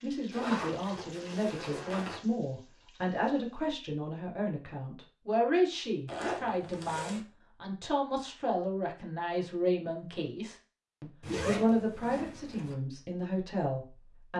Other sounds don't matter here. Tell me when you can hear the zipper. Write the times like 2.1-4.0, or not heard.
0.3-2.2, 6.0-7.2, 11.2-12.8.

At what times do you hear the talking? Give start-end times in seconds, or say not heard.
0.0-14.3.